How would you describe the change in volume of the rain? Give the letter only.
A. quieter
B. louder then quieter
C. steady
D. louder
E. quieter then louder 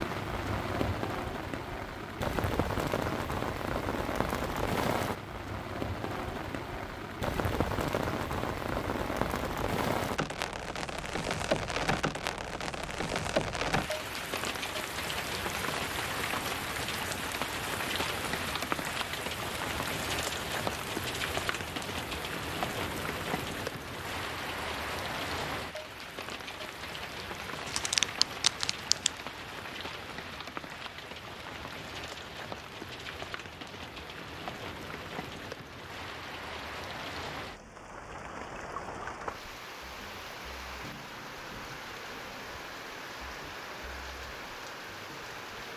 A.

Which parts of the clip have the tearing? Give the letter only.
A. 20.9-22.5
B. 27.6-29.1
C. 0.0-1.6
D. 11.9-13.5
B.